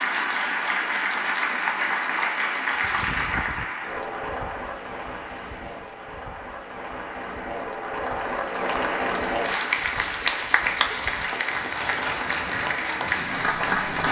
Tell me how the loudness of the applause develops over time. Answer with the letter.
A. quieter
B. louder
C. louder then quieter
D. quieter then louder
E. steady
D.